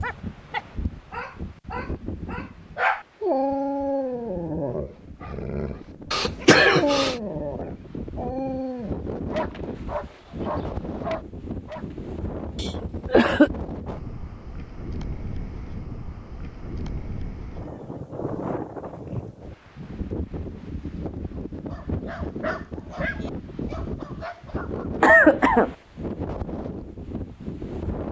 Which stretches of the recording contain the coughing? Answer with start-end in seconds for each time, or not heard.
6.1-7.2, 12.6-13.5, 25.0-25.8.